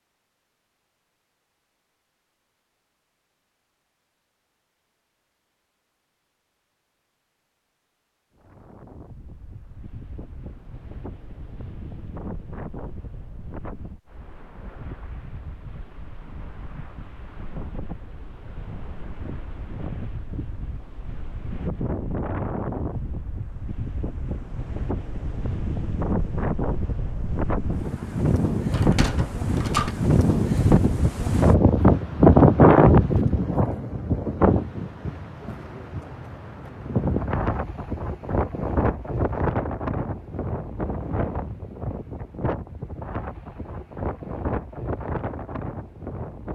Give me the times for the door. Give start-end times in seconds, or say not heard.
28.7-29.9.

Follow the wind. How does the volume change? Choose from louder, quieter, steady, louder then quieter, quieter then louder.
louder then quieter.